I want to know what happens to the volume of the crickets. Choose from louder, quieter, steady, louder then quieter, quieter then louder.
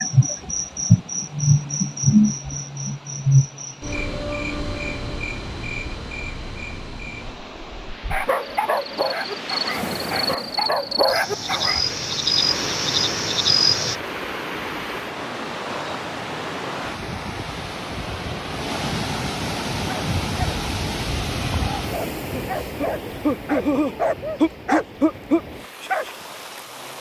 quieter then louder.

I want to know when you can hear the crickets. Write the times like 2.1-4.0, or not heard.
0.0-13.9.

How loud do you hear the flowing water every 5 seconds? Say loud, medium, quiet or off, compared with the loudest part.
quiet, medium, loud, loud, loud, medium.